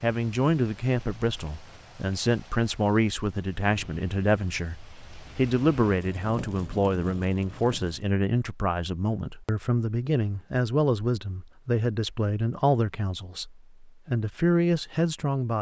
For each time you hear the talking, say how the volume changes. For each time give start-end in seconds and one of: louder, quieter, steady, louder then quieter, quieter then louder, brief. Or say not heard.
0.0-15.5 steady.